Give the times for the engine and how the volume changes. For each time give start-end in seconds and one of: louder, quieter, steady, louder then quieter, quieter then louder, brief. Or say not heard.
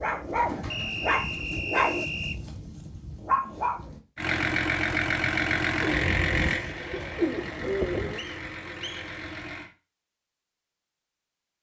4.2-9.7 quieter.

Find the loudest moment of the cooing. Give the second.
8 s.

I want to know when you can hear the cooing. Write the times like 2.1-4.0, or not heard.
0.2-1.8, 5.8-8.2.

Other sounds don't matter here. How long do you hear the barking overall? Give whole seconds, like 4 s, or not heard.
4 s.